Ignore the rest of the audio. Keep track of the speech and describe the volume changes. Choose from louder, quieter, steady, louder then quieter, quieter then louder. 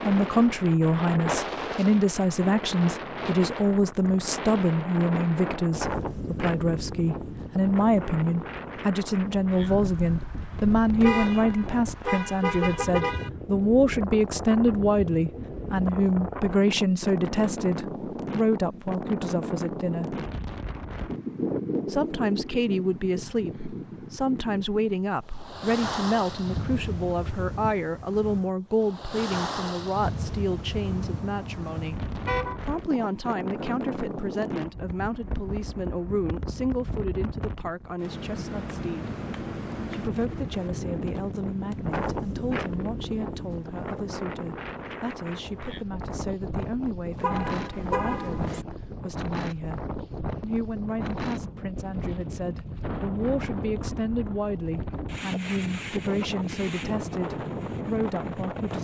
quieter.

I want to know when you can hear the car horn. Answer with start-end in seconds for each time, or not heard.
11.0-13.3, 30.7-32.6, 47.2-48.6.